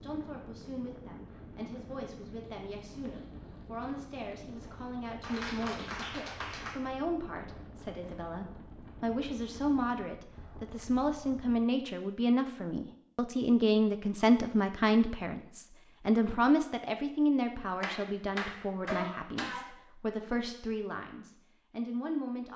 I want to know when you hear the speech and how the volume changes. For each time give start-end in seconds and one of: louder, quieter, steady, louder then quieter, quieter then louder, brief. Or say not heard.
0.0-22.5 louder then quieter.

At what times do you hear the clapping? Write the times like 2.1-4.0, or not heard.
5.2-6.8, 17.8-19.8.